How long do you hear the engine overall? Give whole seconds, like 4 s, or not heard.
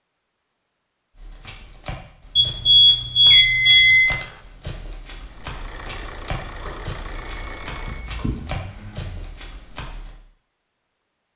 4 s.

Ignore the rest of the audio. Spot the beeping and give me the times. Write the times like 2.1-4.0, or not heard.
2.4-4.2, 6.6-8.3.